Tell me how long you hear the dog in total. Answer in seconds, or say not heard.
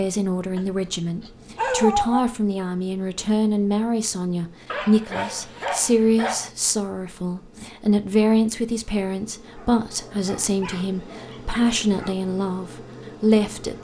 6 s.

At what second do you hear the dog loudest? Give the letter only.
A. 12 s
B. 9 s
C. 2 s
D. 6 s
C.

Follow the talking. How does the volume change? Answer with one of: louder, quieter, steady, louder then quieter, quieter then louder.
steady.